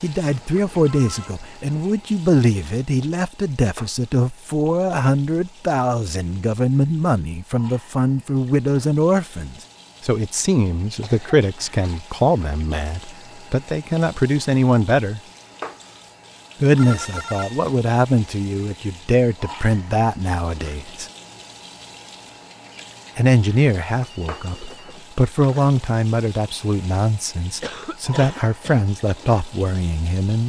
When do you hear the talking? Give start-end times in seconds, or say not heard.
0.0-15.2, 16.6-21.1, 23.1-30.4.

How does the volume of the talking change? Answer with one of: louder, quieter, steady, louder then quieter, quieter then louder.
steady.